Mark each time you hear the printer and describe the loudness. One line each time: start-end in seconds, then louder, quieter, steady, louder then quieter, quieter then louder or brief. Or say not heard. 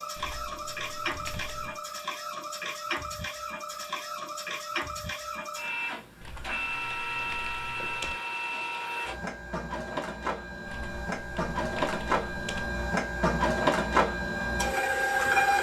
0.0-15.5 louder.